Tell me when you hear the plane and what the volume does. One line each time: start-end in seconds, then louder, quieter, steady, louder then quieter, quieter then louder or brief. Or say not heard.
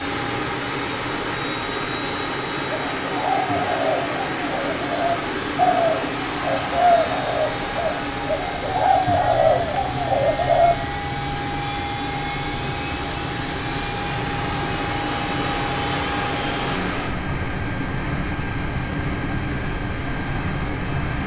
0.0-21.2 louder then quieter.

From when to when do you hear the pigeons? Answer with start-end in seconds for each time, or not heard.
2.9-10.8.